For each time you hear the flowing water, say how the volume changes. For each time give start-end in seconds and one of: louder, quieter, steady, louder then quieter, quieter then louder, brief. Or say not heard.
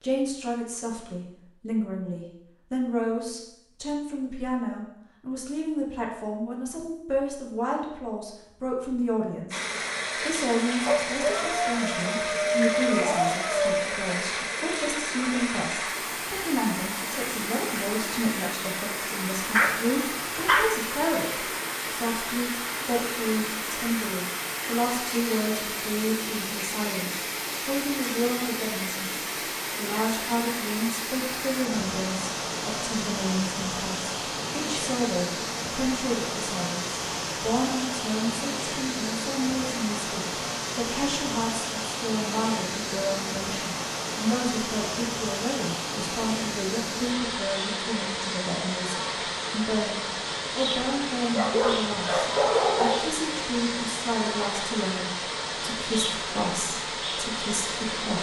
9.5-58.1 steady.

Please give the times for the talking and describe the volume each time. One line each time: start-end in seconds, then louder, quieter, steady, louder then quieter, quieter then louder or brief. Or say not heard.
0.0-58.1 steady.